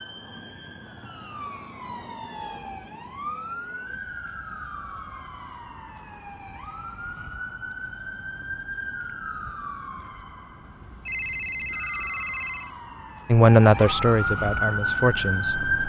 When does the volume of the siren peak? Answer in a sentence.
The loudest moment of the siren is at 15 seconds.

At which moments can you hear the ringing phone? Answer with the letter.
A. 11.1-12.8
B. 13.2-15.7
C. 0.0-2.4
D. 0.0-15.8
A.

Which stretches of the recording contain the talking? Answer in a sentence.
The talking can be heard from 13.2 to 15.7 s.